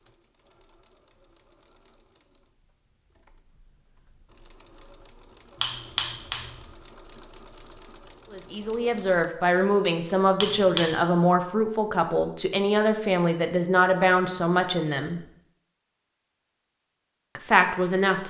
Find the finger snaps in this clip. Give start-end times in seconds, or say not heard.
5.6-6.6, 10.4-10.9.